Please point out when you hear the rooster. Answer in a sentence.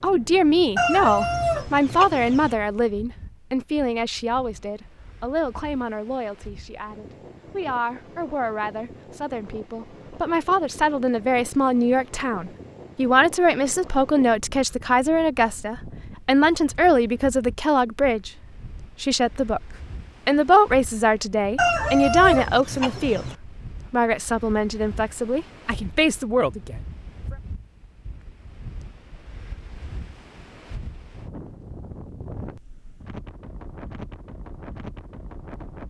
You can hear the rooster from 0.8 to 2.5 s and from 21.6 to 23.4 s.